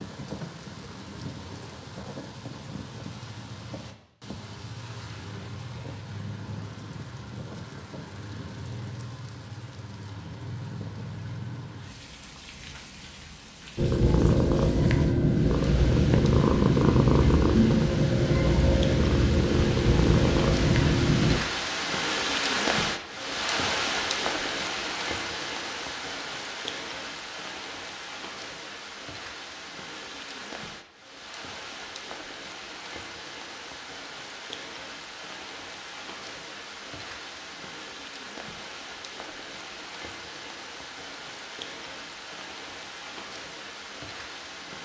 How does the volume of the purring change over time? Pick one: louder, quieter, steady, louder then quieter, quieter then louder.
steady.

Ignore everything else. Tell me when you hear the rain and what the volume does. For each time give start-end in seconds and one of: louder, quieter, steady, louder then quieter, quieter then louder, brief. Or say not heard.
0.0-44.8 louder then quieter.